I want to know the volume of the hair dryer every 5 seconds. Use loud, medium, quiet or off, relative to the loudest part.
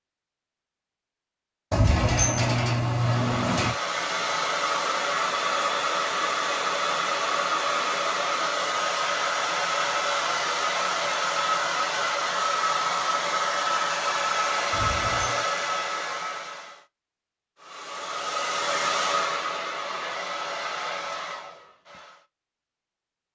loud, loud, loud, loud, medium.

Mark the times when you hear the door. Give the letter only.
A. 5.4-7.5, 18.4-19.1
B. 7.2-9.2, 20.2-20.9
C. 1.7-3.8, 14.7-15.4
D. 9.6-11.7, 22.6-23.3
C.